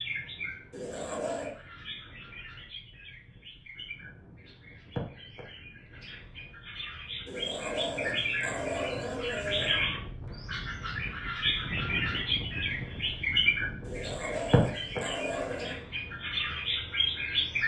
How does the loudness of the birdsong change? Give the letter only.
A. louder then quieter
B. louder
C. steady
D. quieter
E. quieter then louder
B.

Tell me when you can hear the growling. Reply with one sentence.
The growling can be heard from 0.7 to 1.5 s, from 7.2 to 9.8 s and from 13.8 to 15.8 s.